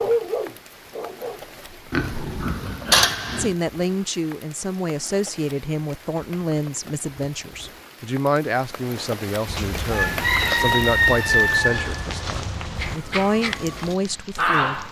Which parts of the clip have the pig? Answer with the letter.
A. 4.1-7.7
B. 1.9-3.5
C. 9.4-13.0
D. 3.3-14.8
B.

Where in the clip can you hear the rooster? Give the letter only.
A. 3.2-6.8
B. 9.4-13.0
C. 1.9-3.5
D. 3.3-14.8
B.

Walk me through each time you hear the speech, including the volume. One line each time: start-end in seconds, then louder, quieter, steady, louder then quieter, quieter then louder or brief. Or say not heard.
3.3-14.8 steady.